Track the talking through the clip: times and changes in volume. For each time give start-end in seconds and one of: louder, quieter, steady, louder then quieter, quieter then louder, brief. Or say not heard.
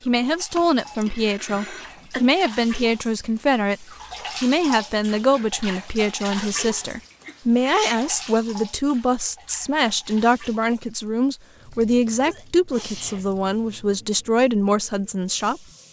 0.1-15.6 steady.